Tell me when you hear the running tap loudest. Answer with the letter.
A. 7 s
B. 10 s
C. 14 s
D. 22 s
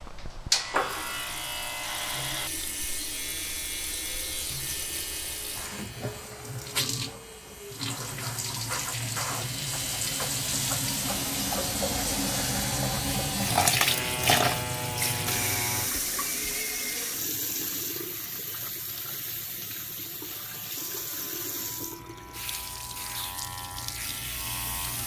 C.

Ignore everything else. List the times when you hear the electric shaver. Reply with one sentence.
The electric shaver can be heard from 0.0 to 15.9 s and from 20.2 to 25.0 s.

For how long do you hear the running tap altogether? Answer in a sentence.
You can hear the running tap for 25 seconds altogether.